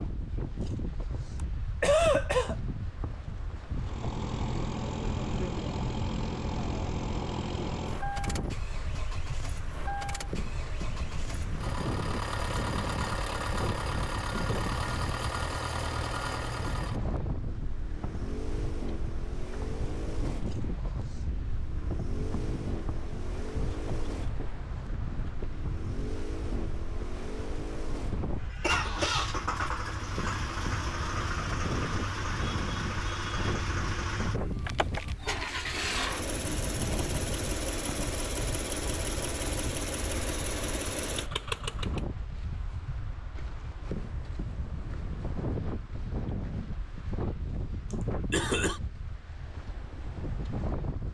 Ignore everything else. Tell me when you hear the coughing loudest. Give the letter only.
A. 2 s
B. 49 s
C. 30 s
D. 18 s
A.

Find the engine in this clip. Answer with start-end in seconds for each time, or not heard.
3.7-42.0.